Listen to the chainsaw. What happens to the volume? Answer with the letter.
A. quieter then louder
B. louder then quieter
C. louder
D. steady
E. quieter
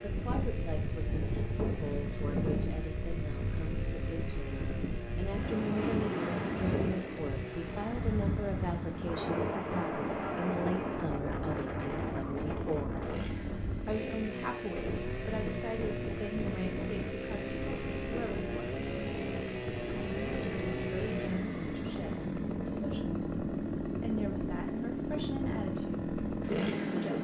C.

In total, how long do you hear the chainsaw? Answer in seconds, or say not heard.
27 s.